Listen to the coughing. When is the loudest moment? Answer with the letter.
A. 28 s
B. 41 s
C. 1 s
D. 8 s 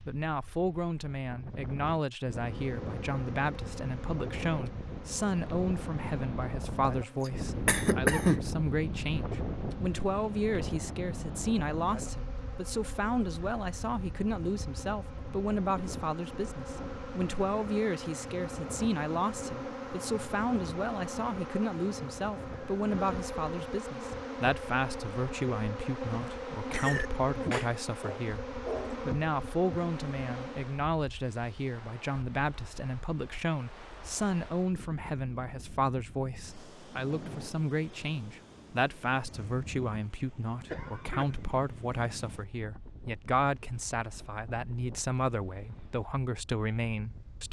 D.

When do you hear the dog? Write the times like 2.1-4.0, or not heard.
28.0-29.0.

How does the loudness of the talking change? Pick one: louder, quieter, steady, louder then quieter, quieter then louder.
steady.